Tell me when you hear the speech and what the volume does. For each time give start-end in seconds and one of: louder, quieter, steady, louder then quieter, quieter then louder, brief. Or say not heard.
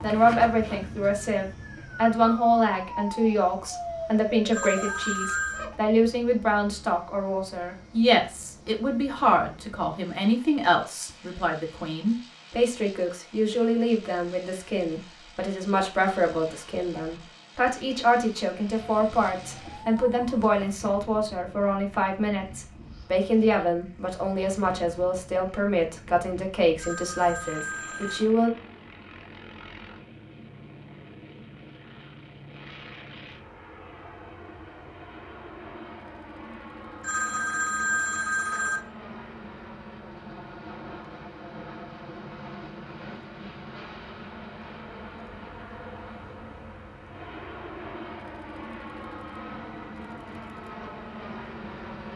0.0-28.5 steady.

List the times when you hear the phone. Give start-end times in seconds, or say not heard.
4.5-5.7, 26.8-28.2, 37.0-38.8.